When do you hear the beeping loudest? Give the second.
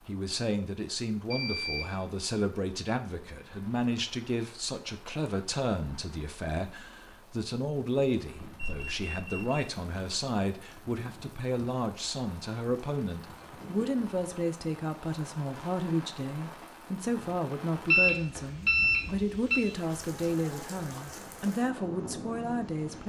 18 s.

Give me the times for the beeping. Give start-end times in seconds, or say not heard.
1.3-1.9, 8.6-9.7, 17.9-19.6.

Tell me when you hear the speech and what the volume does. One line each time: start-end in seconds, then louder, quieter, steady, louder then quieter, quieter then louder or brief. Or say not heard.
0.1-23.0 steady.